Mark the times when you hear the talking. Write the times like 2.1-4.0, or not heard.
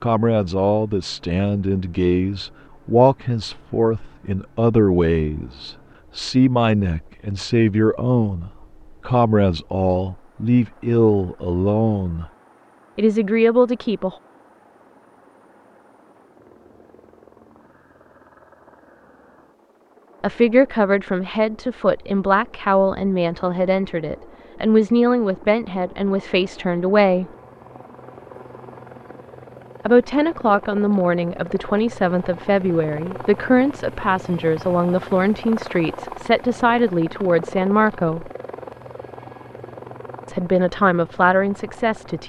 0.0-12.2, 12.9-14.2, 20.2-27.2, 29.9-38.3, 40.2-42.2.